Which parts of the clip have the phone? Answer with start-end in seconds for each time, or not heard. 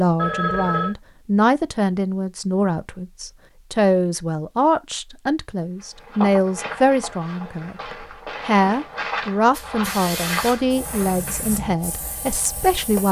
0.1-0.9.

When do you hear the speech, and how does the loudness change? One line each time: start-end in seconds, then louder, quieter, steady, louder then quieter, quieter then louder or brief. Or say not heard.
0.0-13.0 steady.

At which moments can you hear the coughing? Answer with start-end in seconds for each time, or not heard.
not heard.